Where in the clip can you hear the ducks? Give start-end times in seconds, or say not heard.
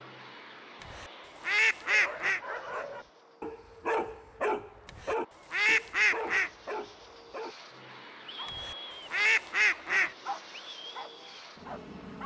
0.8-2.4, 4.8-6.5, 8.4-10.2.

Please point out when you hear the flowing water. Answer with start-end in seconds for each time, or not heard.
not heard.